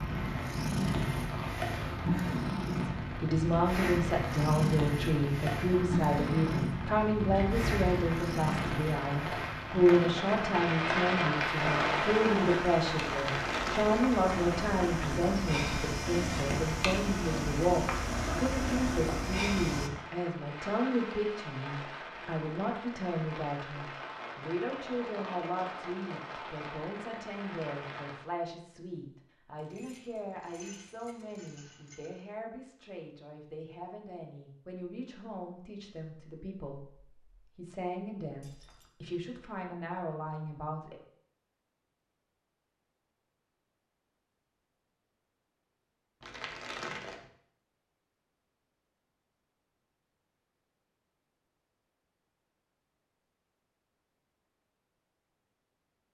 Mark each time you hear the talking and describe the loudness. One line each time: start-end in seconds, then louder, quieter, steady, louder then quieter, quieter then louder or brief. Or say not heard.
2.9-41.0 quieter.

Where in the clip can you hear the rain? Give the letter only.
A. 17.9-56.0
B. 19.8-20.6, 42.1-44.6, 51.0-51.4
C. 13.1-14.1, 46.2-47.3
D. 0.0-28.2
D.